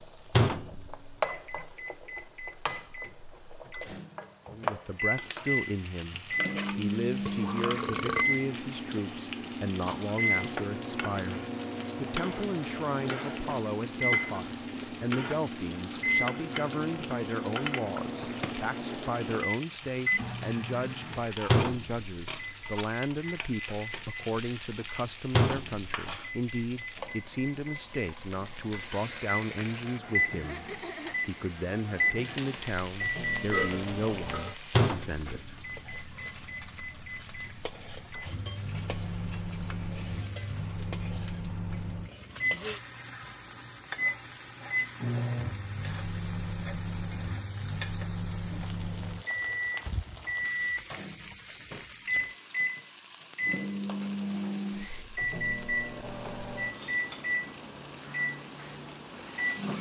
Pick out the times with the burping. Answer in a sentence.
The burping can be heard from 7.2 to 8.2 s and from 33.5 to 34.6 s.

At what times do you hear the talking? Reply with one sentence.
You can hear the talking from 4.5 to 35.5 s.